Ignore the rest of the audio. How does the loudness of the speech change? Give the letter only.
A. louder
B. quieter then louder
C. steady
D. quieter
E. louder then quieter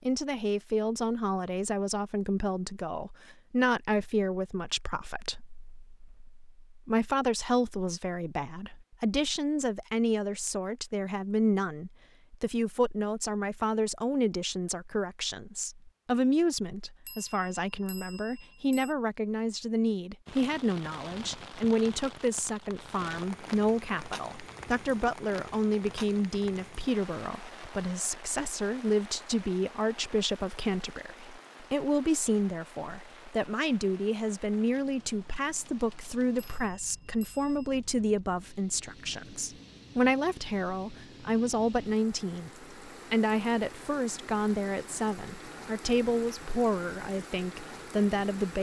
C.